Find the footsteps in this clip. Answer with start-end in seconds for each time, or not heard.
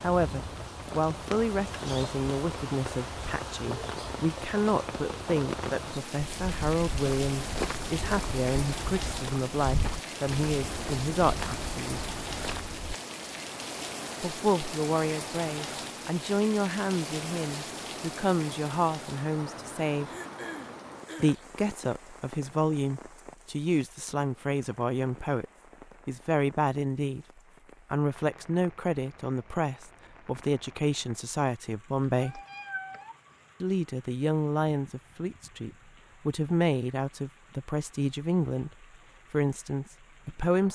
6.2-13.0.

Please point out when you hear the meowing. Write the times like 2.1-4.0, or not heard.
32.0-33.1.